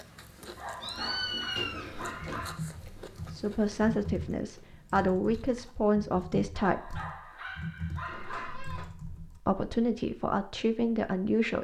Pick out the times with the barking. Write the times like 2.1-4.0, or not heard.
0.6-2.6, 6.5-8.6.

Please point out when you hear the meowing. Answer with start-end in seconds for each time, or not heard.
0.8-2.5, 8.1-8.9.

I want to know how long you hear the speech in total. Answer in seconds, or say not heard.
6 s.